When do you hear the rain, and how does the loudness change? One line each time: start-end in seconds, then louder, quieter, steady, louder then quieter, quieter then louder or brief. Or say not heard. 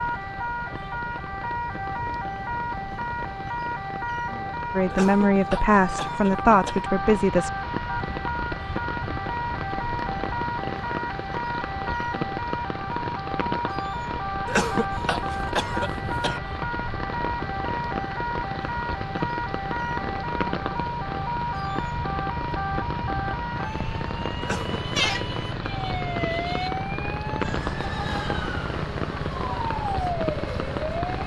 0.0-31.2 louder.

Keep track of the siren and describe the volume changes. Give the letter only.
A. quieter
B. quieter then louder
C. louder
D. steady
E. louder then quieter
D.